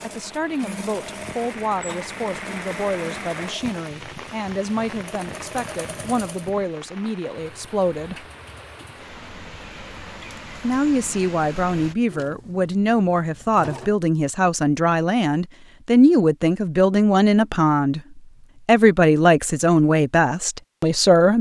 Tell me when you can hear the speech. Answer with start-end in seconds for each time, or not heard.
0.0-8.2, 10.6-21.3.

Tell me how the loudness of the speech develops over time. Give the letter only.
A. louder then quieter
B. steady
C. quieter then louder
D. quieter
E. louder
E.